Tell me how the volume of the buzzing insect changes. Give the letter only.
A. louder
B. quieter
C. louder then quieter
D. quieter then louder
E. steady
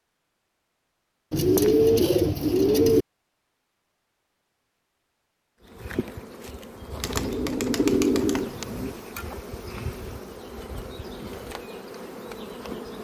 E.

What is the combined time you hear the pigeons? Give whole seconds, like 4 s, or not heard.
4 s.